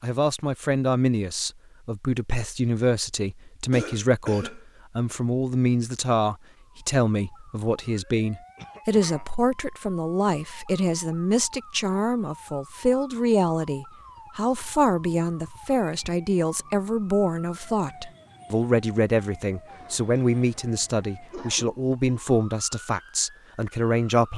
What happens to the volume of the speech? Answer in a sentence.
The volume of the speech stays about the same.